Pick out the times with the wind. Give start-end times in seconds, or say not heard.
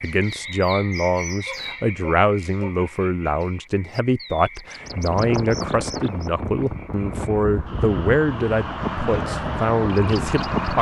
4.8-10.7.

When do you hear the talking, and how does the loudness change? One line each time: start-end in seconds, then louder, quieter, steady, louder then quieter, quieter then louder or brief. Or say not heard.
0.0-10.7 steady.